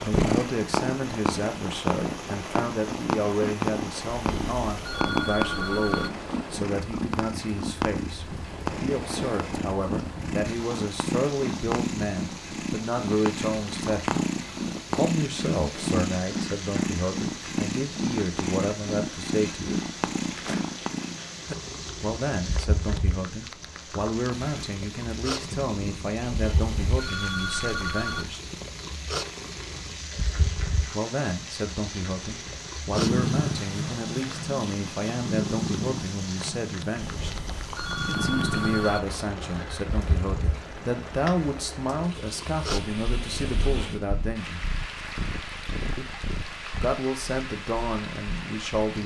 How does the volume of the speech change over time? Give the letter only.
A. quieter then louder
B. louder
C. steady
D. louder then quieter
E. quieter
C.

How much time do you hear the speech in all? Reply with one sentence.
The speech can be heard for 42 seconds in total.